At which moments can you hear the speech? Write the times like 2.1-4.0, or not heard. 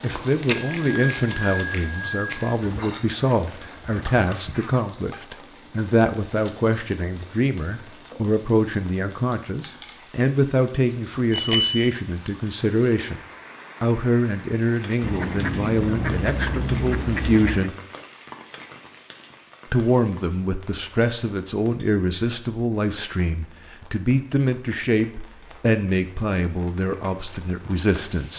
0.0-13.2, 13.8-17.8, 19.7-28.3.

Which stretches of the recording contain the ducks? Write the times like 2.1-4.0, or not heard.
2.6-4.9, 15.0-17.8.